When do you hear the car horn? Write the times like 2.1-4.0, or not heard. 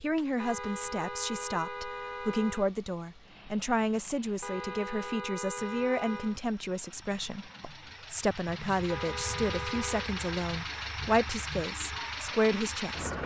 0.3-2.7, 4.4-6.4, 8.8-10.1.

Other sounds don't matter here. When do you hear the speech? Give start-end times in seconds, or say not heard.
0.0-13.2.